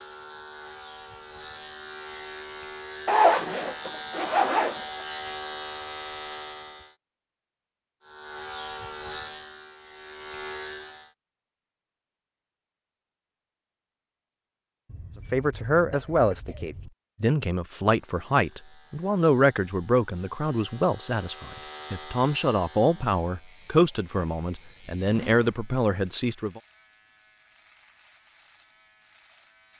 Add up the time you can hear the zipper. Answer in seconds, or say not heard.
3 s.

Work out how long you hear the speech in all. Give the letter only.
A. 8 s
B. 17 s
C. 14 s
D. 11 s
D.